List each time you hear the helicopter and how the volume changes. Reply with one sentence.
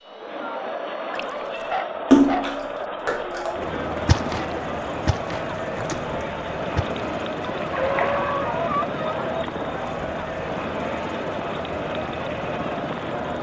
The helicopter can be heard from 0.0 to 13.3 s, getting louder.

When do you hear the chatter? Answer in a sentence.
You can hear the chatter from 0.0 to 13.3 s.